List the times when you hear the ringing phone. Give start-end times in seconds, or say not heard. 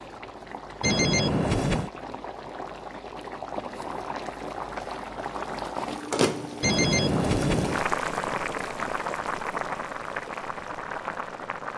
0.8-1.9, 6.6-7.8.